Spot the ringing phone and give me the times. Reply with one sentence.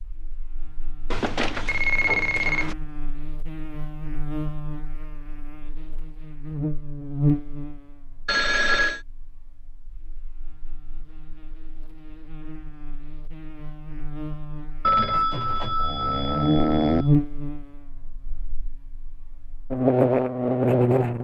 The ringing phone can be heard from 1.1 to 2.8 s, from 8.2 to 9.0 s and from 14.8 to 17.1 s.